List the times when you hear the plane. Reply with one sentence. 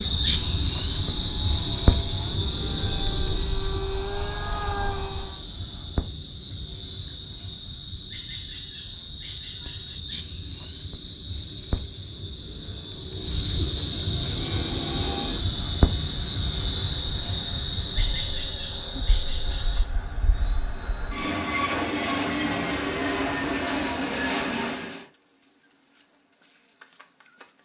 The plane can be heard from 0.0 to 5.4 s and from 14.1 to 25.1 s.